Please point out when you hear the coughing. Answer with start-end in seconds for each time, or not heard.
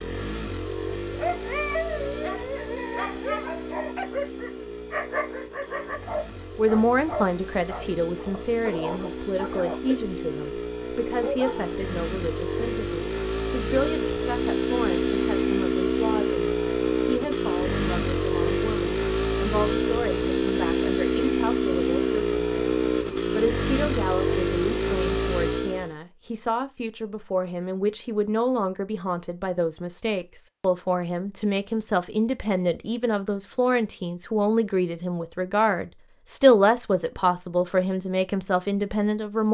not heard.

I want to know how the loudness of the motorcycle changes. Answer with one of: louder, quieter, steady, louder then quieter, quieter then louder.
louder.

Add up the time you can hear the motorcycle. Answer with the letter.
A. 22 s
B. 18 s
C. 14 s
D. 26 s
D.